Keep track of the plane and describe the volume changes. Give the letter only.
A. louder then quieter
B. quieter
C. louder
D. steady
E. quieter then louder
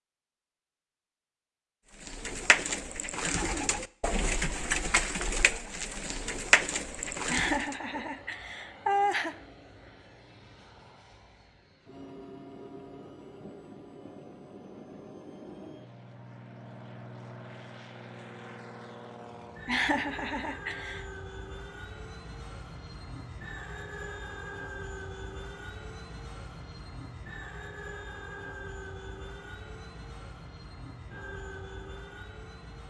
C.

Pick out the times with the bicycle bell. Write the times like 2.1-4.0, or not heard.
not heard.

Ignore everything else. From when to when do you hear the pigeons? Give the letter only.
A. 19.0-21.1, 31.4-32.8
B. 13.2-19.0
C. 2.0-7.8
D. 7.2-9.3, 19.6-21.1
C.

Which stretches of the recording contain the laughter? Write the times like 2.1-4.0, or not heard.
7.2-9.3, 19.6-21.1.